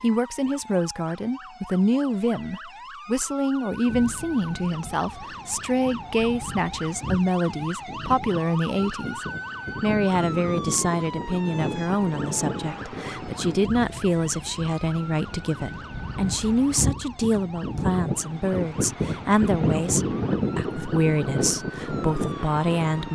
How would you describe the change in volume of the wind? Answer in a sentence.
The volume of the wind goes up.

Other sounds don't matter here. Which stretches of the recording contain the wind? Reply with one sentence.
You can hear the wind from 3.9 to 23.1 s.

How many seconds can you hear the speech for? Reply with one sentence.
You can hear the speech for 23 seconds altogether.